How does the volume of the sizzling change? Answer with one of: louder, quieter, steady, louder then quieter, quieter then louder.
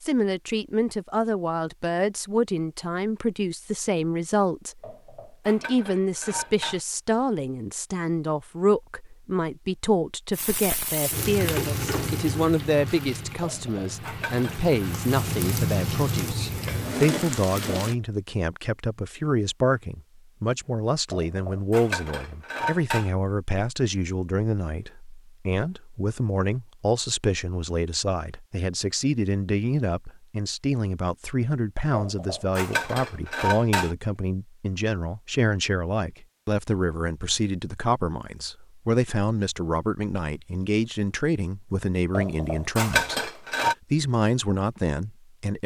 quieter then louder.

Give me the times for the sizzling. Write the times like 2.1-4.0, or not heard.
10.3-17.9.